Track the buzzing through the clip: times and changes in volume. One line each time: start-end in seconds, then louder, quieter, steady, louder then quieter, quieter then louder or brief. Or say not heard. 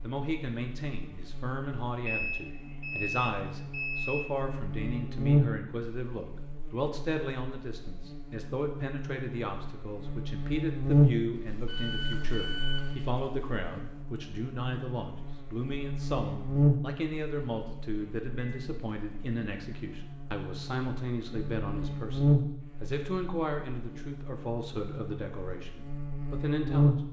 0.0-27.0 quieter then louder.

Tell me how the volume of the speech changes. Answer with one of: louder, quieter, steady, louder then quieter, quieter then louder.
steady.